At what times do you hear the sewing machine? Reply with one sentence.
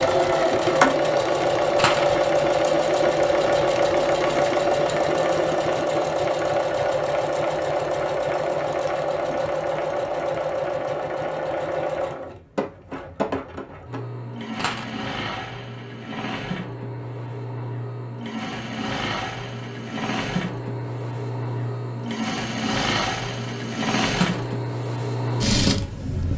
You can hear the sewing machine from 0.0 to 26.3 s.